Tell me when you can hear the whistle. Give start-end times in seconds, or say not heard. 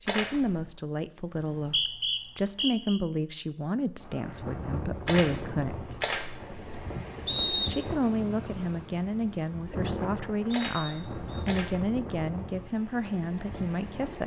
1.3-3.0, 7.2-7.8, 10.6-11.4.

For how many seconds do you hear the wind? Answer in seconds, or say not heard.
10 s.